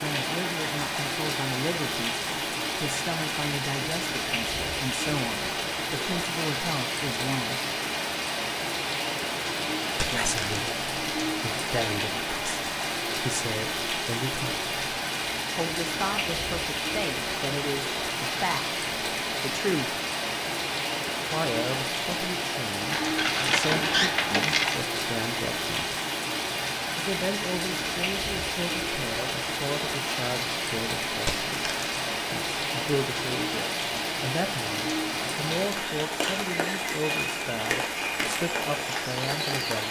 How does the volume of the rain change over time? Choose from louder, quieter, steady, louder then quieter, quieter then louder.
steady.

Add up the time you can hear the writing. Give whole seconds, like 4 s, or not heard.
not heard.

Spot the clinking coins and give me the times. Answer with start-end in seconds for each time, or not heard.
9.9-11.3, 22.9-24.8, 31.2-32.0.